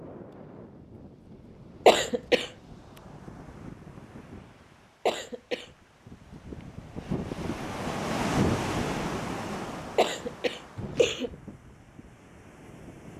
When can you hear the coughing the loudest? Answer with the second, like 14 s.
2 s.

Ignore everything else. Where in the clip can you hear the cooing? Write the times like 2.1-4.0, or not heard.
not heard.